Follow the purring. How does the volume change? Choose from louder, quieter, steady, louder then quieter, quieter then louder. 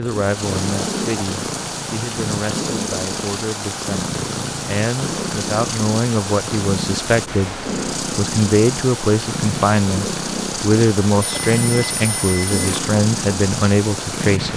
steady.